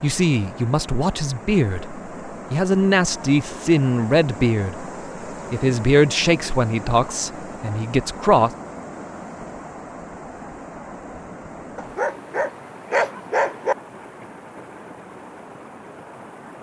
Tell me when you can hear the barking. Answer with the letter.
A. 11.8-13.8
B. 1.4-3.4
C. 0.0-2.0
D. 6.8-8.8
A.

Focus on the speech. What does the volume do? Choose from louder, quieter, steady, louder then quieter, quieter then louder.
steady.